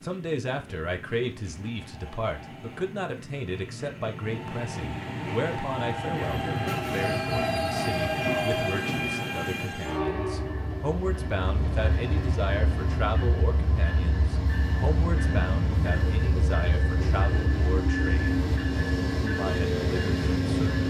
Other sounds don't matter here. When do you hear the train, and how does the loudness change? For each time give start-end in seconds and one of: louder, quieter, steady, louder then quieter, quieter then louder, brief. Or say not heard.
0.0-20.8 louder.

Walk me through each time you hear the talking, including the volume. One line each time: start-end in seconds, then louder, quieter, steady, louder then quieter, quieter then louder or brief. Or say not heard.
0.0-20.8 steady.